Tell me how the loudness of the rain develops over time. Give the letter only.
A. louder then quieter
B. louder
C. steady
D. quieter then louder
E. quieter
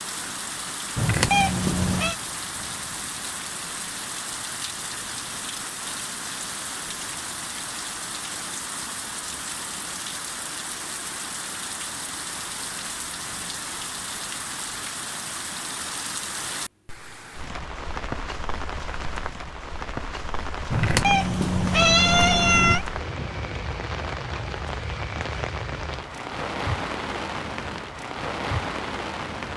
C.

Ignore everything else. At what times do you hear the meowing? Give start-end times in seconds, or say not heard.
0.9-2.1, 20.7-22.9.